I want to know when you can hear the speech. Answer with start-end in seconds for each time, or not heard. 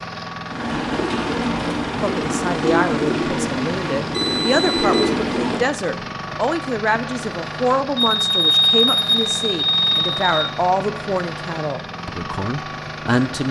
2.0-13.4.